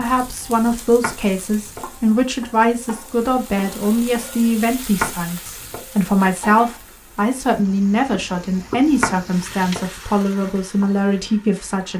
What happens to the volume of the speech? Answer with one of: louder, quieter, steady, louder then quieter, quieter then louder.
steady.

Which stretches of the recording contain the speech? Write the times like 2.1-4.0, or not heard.
0.0-11.9.